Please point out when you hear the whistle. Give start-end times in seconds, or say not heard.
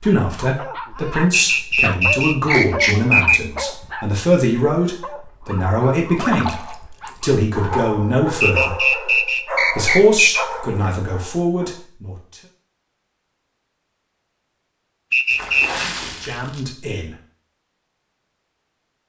1.3-3.6, 8.4-10.4, 15.1-15.8.